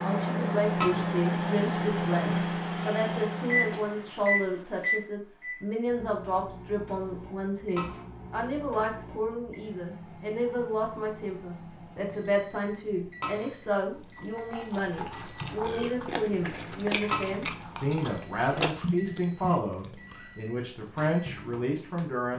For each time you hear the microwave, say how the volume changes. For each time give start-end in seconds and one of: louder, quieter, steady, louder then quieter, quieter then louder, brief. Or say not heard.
0.0-22.3 quieter.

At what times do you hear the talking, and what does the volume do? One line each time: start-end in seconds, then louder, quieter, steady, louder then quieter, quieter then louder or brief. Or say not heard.
0.0-22.3 steady.